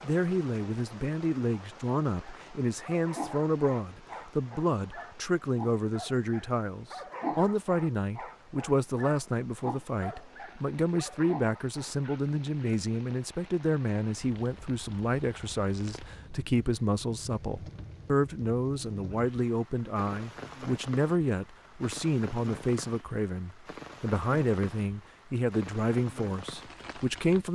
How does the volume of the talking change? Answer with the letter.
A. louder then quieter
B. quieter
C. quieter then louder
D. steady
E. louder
D.